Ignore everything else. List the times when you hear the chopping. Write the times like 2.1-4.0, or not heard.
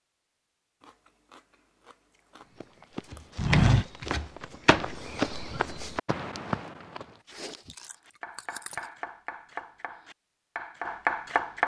3.1-5.0, 8.1-11.6.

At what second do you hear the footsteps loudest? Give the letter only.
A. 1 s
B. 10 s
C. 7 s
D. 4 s
D.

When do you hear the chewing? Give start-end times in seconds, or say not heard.
0.8-3.4, 7.2-8.9.